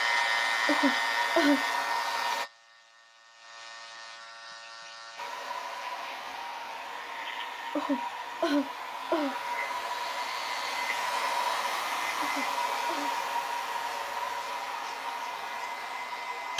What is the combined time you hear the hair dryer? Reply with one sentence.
The hair dryer can be heard for 14 seconds in total.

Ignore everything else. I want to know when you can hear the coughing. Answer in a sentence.
The coughing can be heard from 0.7 to 1.6 s, from 7.8 to 9.3 s and from 12.2 to 13.1 s.